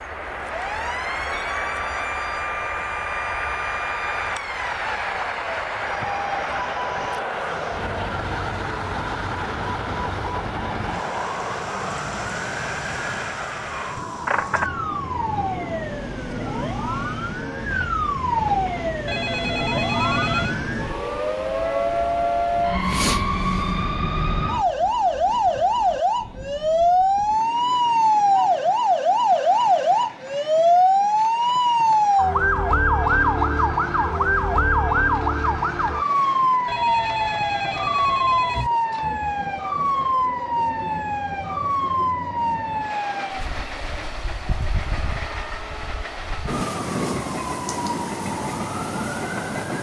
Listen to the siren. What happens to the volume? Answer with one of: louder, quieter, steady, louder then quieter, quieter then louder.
louder then quieter.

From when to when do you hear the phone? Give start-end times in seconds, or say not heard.
19.1-20.6, 36.6-38.7.